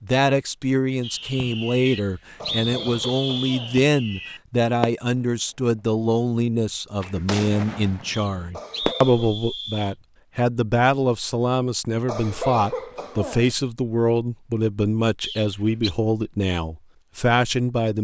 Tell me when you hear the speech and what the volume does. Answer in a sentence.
You can hear the speech from 0.0 to 18.0 s, at a steady volume.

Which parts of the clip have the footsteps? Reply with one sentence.
The footsteps can't be heard in this clip.